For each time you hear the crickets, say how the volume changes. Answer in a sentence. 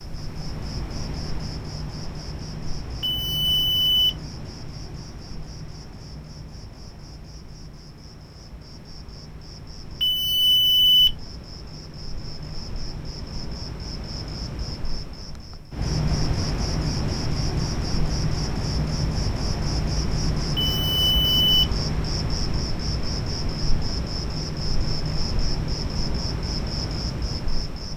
You can hear the crickets from 0.0 to 27.9 s, getting quieter then louder.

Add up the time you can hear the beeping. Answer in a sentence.
The beeping can be heard for 3 seconds in total.